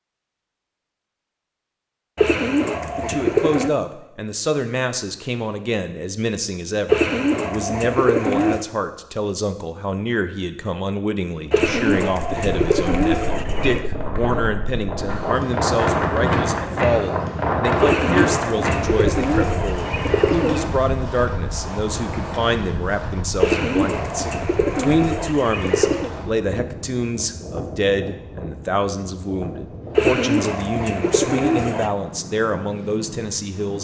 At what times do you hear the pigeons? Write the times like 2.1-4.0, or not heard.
2.1-3.7, 6.8-8.7, 11.5-13.9, 17.8-20.7, 23.4-26.1, 29.9-31.9.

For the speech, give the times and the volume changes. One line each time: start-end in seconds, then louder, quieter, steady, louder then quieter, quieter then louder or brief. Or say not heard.
3.0-33.7 steady.